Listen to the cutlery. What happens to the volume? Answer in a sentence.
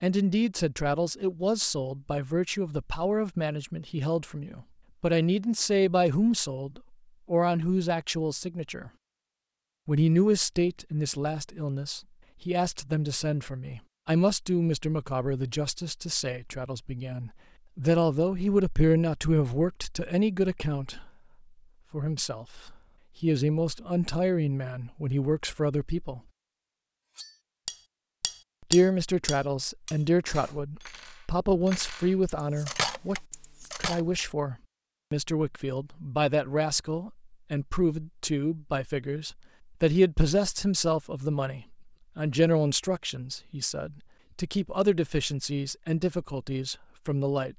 The volume of the cutlery goes down, then up.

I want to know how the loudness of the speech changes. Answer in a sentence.
The volume of the speech stays about the same.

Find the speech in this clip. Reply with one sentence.
The speech can be heard from 0.0 to 8.9 s, from 9.8 to 21.1 s, from 21.9 to 26.2 s and from 28.7 to 47.5 s.